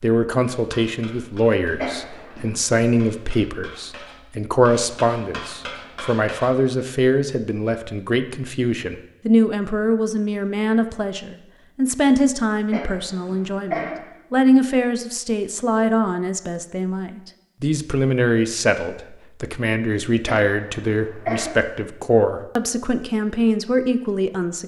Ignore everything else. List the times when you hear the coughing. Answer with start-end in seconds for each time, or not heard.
1.8-2.5, 12.7-14.1, 20.2-21.6.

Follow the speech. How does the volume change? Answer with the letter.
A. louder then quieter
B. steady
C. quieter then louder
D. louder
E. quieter
B.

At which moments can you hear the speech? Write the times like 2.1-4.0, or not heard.
0.0-24.6.